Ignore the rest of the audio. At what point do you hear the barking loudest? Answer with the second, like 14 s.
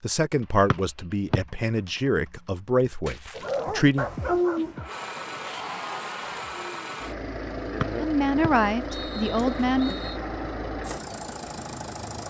4 s.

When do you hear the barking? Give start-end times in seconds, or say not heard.
3.4-6.8.